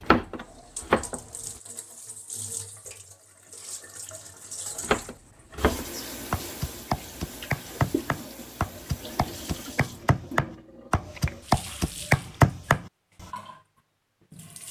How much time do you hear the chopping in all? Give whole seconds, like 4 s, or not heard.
9 s.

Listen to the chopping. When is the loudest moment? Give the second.
12 s.